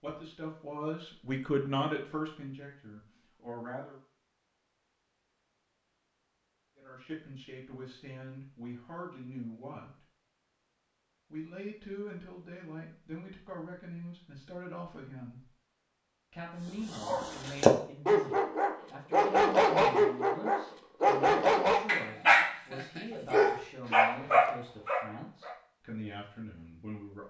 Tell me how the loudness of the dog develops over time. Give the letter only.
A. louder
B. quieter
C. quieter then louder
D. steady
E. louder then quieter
D.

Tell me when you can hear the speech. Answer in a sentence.
The speech can be heard from 0.0 to 4.0 s, from 6.8 to 10.0 s, from 11.3 to 15.5 s and from 16.3 to 27.2 s.